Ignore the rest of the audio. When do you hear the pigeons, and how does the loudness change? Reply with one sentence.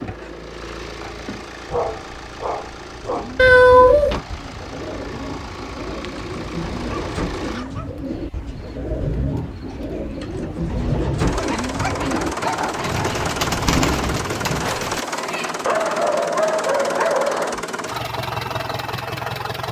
You can hear the pigeons from 3.0 to 15.1 s, getting louder.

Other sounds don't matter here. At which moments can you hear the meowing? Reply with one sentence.
You can hear the meowing from 3.4 to 4.2 s and from 14.6 to 15.7 s.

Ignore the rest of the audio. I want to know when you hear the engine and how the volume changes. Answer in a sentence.
The engine can be heard from 0.0 to 19.6 s, getting louder.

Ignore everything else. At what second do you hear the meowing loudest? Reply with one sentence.
The loudest moment of the meowing is at 4 seconds.